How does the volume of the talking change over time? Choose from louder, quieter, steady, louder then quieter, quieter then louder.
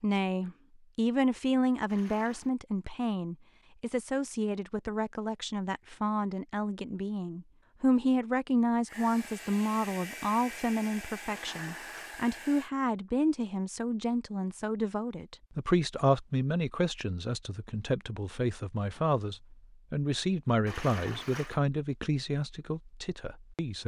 steady.